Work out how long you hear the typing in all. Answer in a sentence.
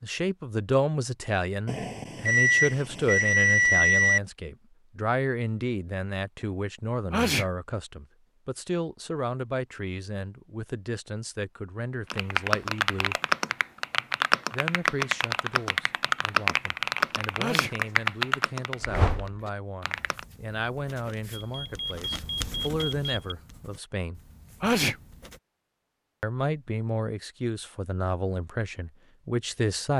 The typing can be heard for 8 seconds in total.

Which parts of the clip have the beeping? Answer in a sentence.
You can hear the beeping from 1.6 to 4.2 s and from 21.3 to 23.4 s.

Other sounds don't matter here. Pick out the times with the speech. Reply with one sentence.
The speech can be heard from 0.0 to 13.2 s, from 14.5 to 24.2 s and from 26.2 to 29.9 s.